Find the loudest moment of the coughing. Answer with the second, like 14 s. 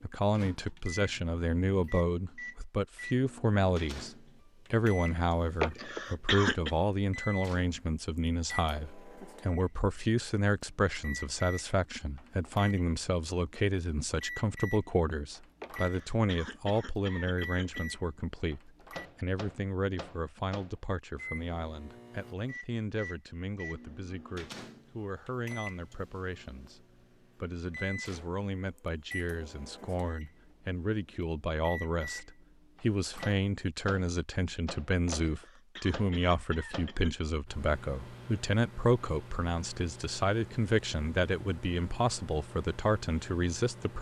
6 s.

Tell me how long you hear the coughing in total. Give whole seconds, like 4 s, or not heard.
6 s.